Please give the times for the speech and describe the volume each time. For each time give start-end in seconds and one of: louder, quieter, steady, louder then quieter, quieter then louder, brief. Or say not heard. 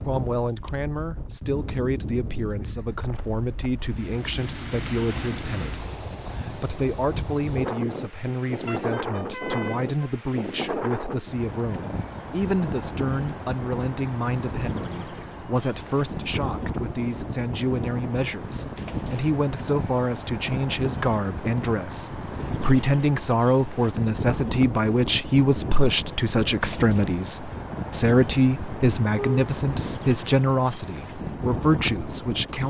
0.0-32.6 louder.